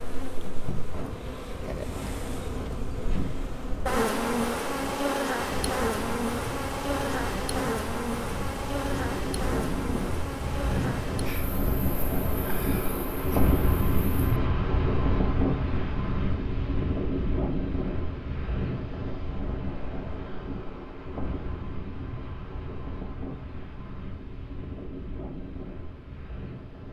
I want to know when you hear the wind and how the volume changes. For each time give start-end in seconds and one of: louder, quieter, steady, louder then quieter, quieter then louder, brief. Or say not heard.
0.0-26.8 louder then quieter.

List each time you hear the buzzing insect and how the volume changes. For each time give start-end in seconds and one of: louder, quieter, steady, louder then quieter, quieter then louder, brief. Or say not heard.
0.0-14.3 louder then quieter.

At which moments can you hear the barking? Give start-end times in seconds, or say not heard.
not heard.